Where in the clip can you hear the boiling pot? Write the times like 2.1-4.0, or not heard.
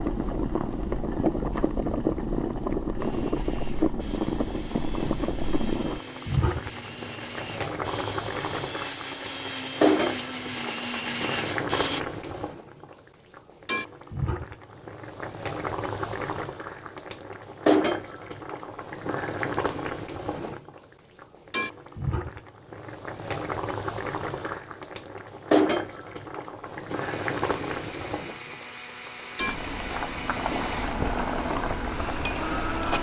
0.0-32.9.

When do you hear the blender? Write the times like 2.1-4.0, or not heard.
3.0-12.0, 26.9-32.9.